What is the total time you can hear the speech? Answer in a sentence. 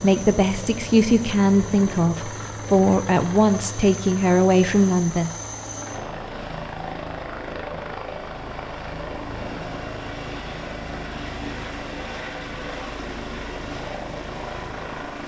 The speech can be heard for 5 seconds in total.